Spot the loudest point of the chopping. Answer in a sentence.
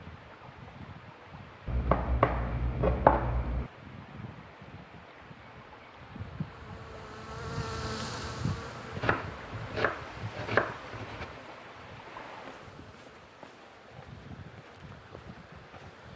The loudest moment of the chopping is at 3 seconds.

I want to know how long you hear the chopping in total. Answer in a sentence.
The chopping can be heard for 4 seconds in total.